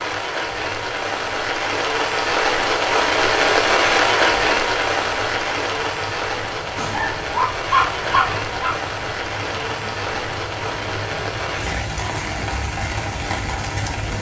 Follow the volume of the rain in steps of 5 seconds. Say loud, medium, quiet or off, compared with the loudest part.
loud, medium, medium.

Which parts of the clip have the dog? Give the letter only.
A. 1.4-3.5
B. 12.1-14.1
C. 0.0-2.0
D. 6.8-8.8
D.